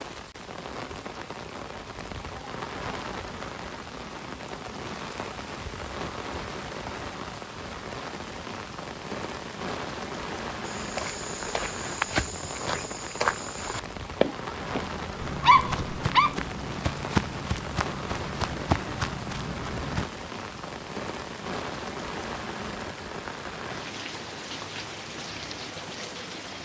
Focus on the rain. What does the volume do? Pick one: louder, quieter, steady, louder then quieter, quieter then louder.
steady.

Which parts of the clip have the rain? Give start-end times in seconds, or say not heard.
0.0-26.6.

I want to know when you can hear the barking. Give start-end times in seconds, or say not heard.
14.5-16.4.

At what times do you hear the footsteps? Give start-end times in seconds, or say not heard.
10.7-20.1.